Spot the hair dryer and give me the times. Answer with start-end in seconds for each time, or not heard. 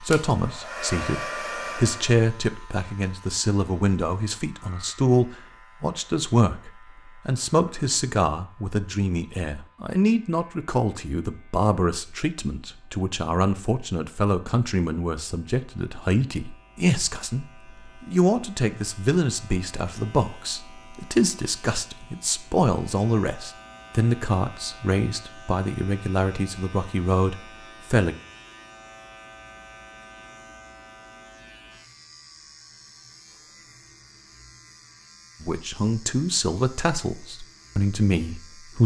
0.0-2.2.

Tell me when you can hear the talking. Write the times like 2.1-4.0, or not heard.
0.0-28.1, 35.4-38.8.